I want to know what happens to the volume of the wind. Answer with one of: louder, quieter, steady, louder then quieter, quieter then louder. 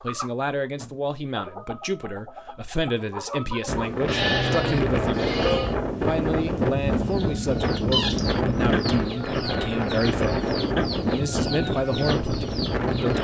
steady.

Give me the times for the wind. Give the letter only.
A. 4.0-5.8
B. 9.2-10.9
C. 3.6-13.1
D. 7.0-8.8
C.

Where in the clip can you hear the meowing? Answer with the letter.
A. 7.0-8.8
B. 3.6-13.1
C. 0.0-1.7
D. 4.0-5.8
A.